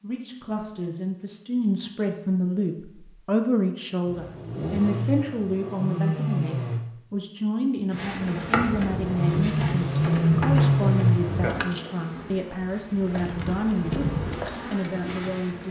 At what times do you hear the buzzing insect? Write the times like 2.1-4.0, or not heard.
7.9-15.6.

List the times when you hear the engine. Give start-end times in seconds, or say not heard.
4.1-6.8, 8.8-11.7.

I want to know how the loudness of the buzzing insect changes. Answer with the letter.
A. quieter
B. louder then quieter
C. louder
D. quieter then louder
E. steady
D.